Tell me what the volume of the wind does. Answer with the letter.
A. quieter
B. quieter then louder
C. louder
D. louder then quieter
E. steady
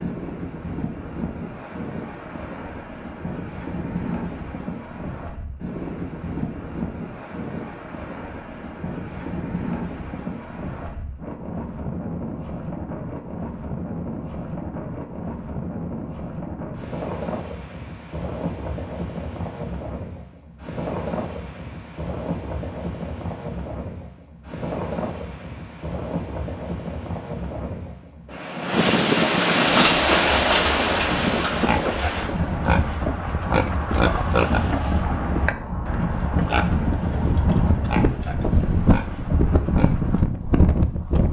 C.